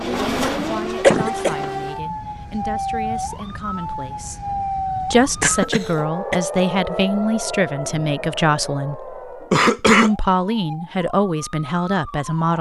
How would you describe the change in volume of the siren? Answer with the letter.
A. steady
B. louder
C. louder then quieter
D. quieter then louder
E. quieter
E.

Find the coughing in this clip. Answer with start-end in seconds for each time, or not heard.
1.0-1.6, 5.4-6.3, 9.5-10.1.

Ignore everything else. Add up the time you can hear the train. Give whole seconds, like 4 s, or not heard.
2 s.